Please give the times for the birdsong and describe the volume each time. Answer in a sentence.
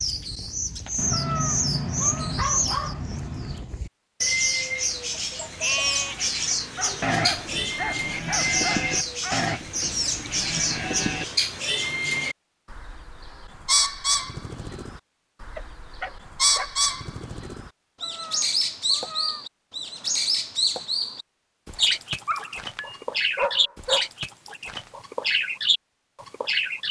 You can hear the birdsong from 0.0 to 26.8 s, at a steady volume.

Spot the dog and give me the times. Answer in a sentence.
You can hear the dog from 0.9 to 3.6 s, from 6.8 to 9.5 s, from 15.6 to 16.7 s and from 22.2 to 24.1 s.